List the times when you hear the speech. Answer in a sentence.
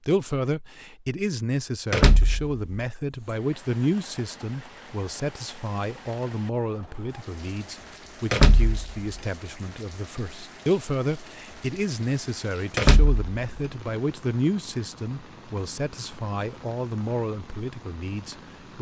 You can hear the speech from 0.1 to 18.7 s.